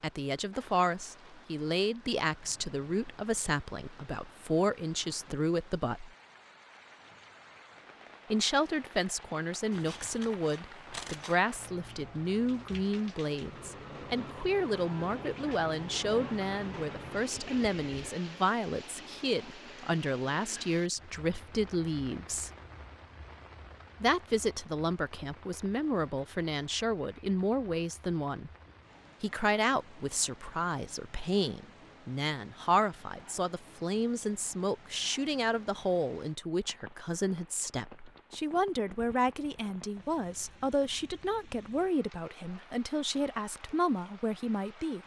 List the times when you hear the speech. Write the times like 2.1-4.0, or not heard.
0.0-6.1, 8.3-22.5, 24.0-28.5, 29.2-45.0.